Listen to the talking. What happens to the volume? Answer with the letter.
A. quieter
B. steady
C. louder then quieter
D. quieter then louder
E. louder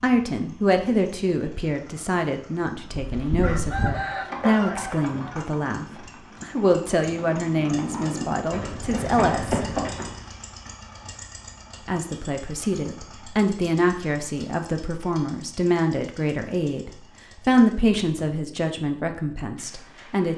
B.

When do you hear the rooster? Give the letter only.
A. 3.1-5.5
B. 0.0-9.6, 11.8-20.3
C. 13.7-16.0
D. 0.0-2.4
A.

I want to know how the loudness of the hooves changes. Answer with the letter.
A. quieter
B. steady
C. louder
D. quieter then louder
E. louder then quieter
D.